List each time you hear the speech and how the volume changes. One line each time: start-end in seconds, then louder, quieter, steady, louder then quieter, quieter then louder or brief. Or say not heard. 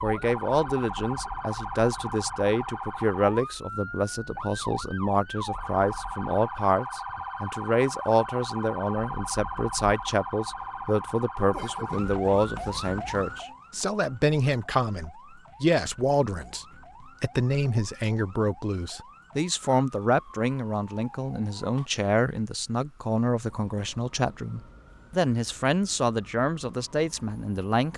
0.0-27.9 steady.